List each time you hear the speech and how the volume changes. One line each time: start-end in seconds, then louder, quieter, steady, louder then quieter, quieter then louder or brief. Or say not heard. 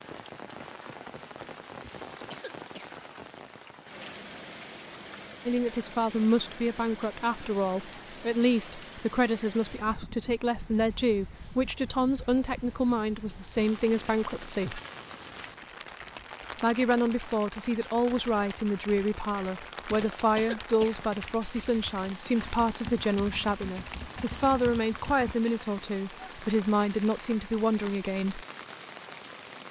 5.5-14.8 steady
16.6-28.4 steady.